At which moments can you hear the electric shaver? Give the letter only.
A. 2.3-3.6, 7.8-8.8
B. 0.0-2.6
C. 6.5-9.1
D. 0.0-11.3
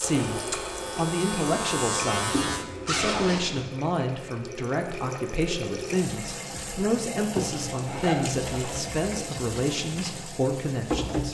B.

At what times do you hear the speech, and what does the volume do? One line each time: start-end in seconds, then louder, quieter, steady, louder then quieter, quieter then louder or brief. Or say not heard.
0.0-11.3 steady.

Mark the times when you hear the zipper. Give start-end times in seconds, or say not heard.
2.3-3.6, 7.8-8.8.